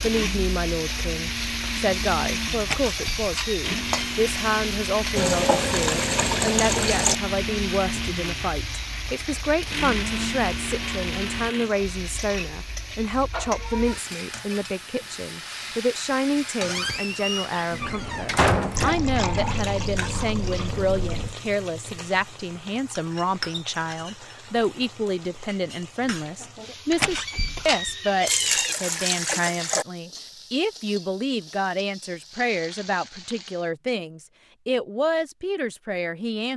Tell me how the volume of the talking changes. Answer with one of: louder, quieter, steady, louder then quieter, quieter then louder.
steady.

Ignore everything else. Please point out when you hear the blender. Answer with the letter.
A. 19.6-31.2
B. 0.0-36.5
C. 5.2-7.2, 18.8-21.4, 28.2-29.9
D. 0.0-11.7
D.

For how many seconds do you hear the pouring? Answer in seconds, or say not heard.
6 s.